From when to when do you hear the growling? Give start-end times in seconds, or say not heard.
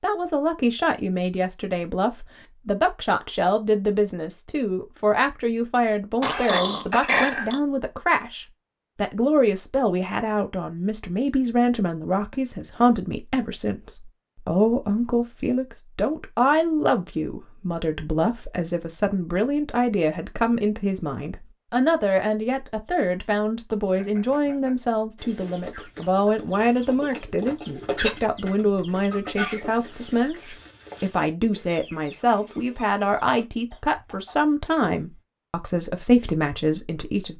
6.2-7.6.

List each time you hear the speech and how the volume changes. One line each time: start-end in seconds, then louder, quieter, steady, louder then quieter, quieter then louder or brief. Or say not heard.
0.0-37.3 steady.